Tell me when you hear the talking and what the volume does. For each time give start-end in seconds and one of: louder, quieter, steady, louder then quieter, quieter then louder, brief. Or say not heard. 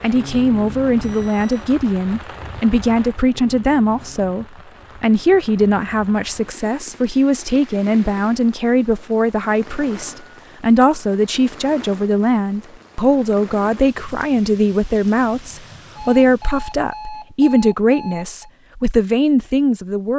0.0-20.1 steady.